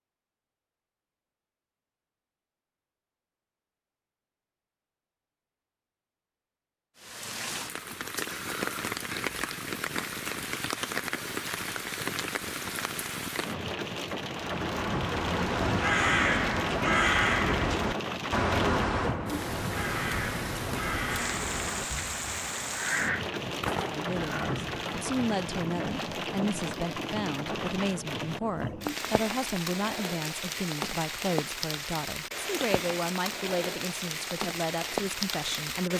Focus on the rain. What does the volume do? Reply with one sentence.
The loudness of the rain stays about the same.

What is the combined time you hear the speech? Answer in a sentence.
You can hear the speech for 12 seconds altogether.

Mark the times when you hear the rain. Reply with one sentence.
The rain can be heard from 7.0 to 35.9 s.